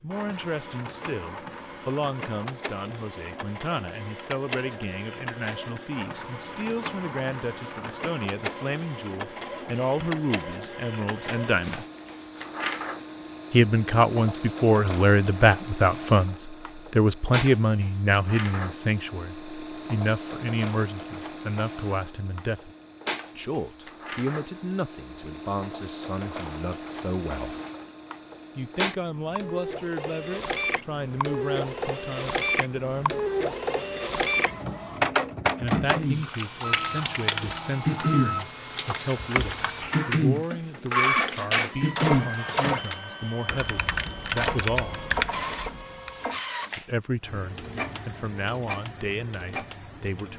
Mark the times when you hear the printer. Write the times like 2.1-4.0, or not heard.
0.1-50.3.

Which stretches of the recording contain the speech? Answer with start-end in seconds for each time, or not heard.
0.0-11.8, 13.5-22.7, 23.4-27.6, 28.6-33.1, 35.5-45.0, 46.8-50.3.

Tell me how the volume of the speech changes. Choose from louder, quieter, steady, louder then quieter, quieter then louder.
louder then quieter.